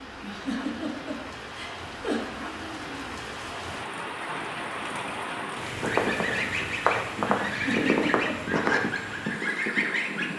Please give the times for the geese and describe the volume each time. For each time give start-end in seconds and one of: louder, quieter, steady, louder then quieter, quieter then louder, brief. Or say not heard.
5.8-10.3 steady.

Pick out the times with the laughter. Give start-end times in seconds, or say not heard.
0.2-2.2, 7.4-8.3.